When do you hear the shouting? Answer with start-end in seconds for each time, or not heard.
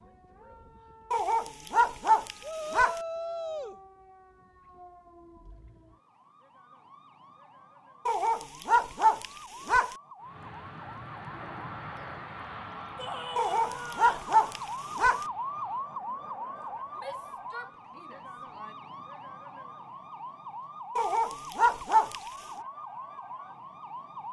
2.4-3.8, 12.9-14.3, 16.9-18.8.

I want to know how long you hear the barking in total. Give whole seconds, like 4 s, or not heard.
7 s.